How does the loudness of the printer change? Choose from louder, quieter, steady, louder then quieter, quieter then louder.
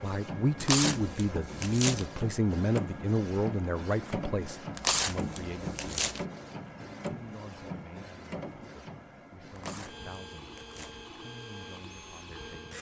quieter.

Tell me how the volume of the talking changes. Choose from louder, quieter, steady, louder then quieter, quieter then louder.
quieter.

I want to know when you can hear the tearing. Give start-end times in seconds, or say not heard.
0.6-2.0, 4.8-6.2, 9.6-11.1.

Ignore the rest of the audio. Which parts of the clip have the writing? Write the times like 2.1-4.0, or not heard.
not heard.